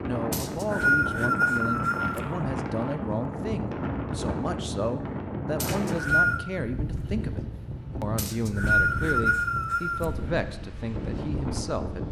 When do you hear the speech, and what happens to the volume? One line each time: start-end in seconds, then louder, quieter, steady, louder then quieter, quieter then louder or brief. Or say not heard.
0.1-12.0 steady.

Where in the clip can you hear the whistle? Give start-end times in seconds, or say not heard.
0.3-2.2, 5.6-6.4, 8.2-10.1.